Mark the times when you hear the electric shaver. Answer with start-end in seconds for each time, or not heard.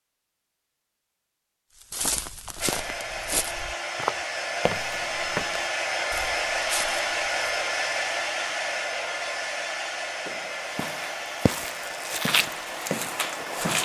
not heard.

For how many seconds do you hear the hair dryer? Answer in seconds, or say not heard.
11 s.